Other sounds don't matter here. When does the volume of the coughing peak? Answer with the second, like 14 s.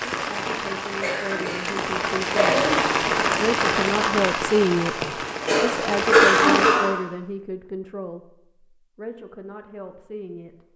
6 s.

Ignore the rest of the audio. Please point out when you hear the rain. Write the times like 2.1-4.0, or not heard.
0.0-6.8.